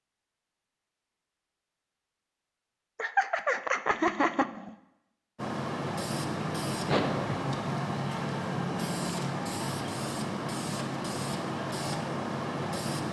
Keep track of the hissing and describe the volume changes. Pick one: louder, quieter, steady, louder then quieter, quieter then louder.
steady.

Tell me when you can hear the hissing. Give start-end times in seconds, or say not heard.
5.3-13.0.